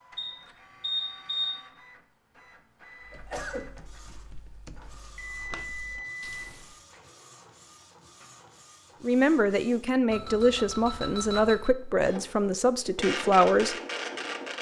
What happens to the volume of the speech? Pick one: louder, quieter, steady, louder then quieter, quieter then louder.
steady.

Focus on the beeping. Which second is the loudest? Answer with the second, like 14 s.
1 s.